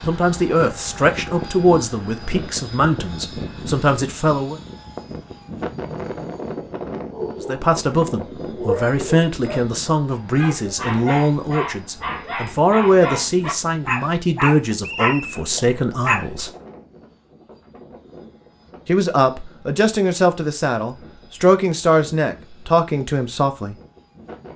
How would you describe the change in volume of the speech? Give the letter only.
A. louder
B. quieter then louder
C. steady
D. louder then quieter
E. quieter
C.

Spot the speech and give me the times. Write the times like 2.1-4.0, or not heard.
0.1-4.5, 7.4-16.5, 18.9-23.8.